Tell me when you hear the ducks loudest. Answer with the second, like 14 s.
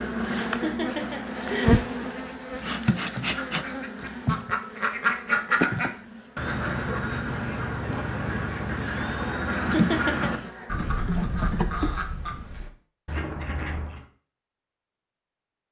5 s.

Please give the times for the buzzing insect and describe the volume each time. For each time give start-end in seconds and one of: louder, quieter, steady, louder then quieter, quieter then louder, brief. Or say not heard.
0.0-11.9 quieter then louder.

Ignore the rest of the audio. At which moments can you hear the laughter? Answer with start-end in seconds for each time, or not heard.
0.5-1.9, 9.7-10.3.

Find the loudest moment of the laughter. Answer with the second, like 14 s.
10 s.